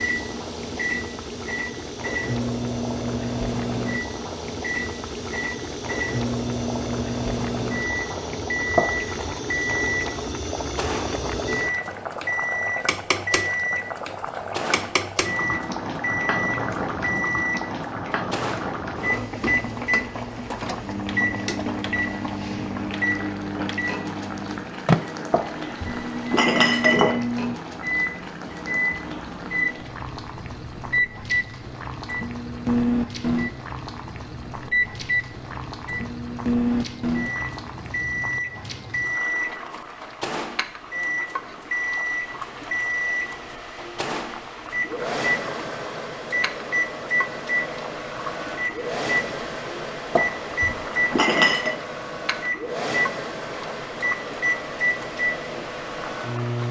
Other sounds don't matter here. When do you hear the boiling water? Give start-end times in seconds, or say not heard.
0.0-56.6.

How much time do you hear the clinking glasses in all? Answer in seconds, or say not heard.
4 s.